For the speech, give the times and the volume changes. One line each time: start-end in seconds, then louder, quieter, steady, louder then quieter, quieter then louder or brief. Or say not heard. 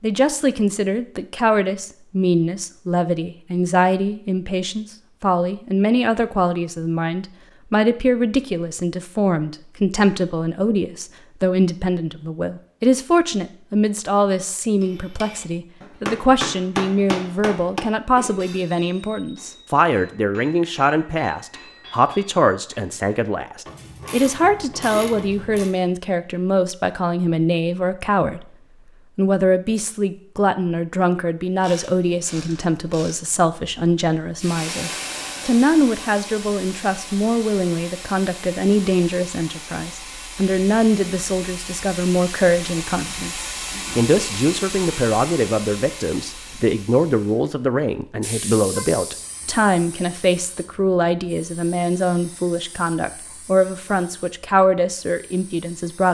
0.0-28.6 steady
29.1-56.0 steady.